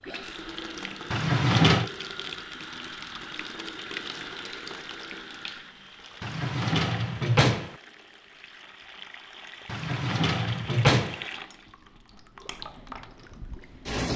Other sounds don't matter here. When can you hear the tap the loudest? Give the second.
14 s.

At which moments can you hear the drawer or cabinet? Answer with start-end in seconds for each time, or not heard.
1.1-1.9, 6.2-7.8, 9.7-11.2.